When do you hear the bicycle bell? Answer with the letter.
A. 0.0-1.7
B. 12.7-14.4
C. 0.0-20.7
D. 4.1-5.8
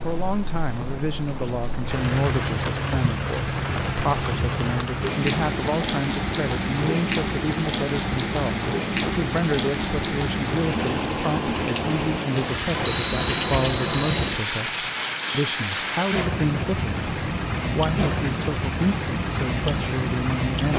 B.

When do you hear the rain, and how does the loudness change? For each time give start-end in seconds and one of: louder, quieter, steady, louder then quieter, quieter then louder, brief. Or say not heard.
0.0-20.7 steady.